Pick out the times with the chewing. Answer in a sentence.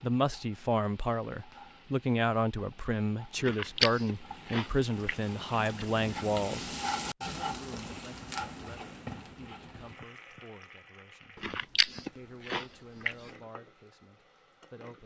The chewing can be heard from 3.4 to 5.8 s and from 11.4 to 13.3 s.